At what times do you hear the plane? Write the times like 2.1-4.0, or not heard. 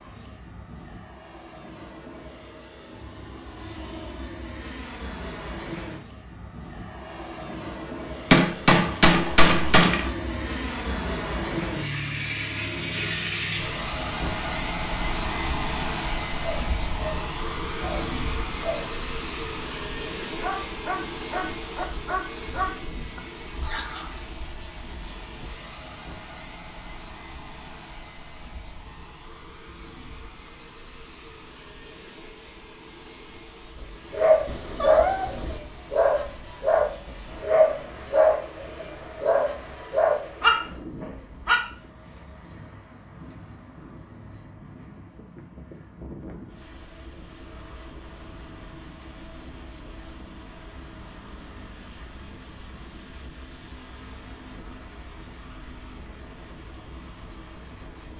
0.0-58.1.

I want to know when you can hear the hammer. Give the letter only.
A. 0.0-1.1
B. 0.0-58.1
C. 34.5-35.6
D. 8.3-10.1
D.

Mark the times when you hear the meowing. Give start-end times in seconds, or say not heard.
34.5-35.6.